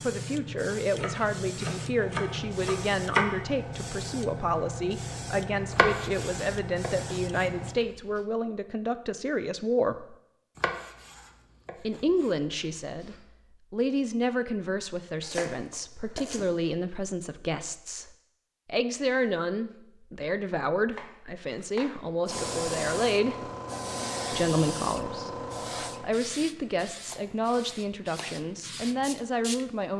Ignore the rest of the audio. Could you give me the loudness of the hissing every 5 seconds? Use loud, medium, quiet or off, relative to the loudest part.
loud, loud, off, off, loud, medium.